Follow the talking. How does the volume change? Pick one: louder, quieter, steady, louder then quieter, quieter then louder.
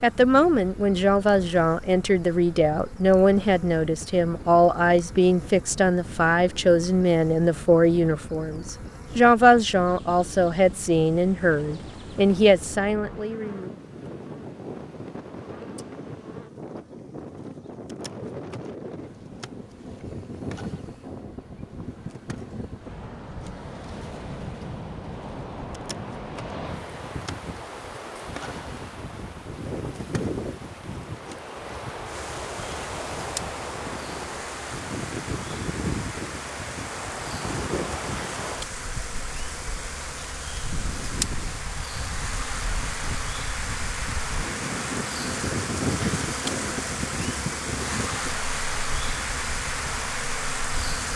steady.